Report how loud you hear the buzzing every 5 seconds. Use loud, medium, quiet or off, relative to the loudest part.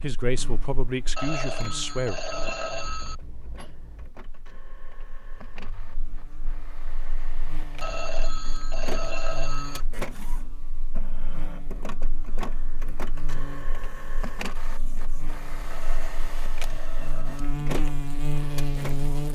quiet, quiet, quiet, loud.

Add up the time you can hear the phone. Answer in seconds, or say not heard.
6 s.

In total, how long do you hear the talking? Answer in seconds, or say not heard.
2 s.